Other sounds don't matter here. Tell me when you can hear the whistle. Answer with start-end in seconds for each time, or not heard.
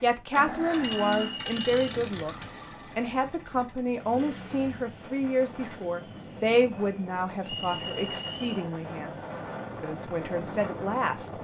0.8-1.9, 7.4-8.7.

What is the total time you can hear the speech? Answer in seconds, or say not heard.
11 s.